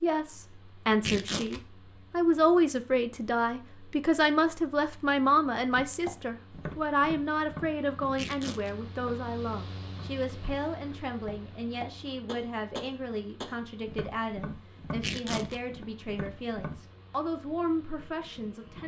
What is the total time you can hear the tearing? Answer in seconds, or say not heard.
2 s.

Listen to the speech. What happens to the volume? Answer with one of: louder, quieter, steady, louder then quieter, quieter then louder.
quieter.